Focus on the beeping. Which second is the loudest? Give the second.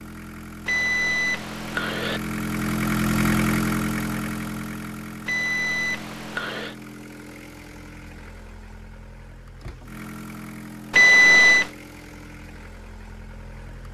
11 s.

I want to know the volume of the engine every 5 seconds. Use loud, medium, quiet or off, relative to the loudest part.
loud, quiet, quiet.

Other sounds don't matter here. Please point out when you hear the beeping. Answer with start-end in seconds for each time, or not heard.
0.7-2.2, 5.2-6.8, 10.9-11.7.